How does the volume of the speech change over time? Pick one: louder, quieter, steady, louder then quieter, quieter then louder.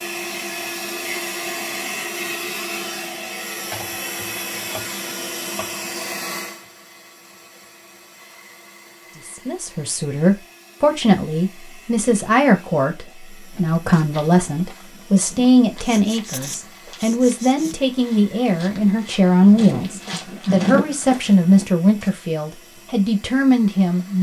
steady.